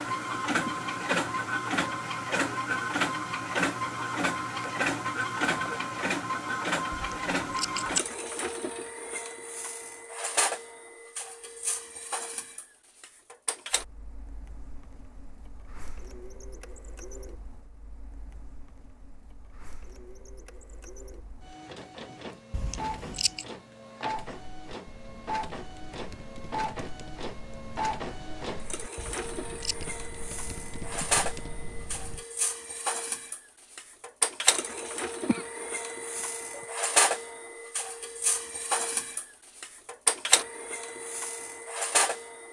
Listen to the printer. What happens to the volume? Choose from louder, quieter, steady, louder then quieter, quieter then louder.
quieter then louder.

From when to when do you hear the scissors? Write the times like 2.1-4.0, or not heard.
6.9-8.1, 22.5-23.4, 28.9-29.9.